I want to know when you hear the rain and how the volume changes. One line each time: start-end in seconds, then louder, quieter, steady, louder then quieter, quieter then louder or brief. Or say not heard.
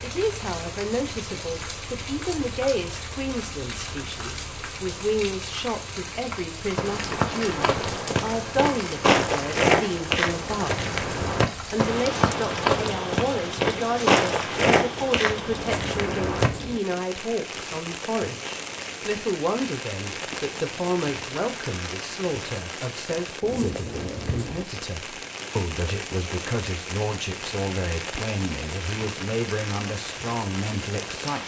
0.0-31.4 steady.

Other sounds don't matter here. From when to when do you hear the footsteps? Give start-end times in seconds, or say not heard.
6.8-16.5.